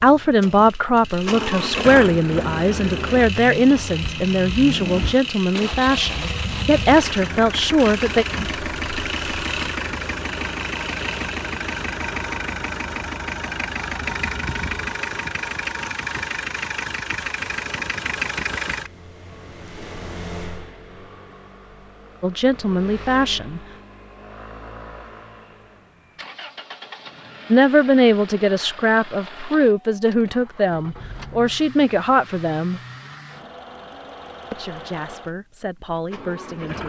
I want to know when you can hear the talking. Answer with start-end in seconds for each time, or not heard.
0.0-8.2, 22.2-23.6, 27.5-32.8, 34.5-36.8.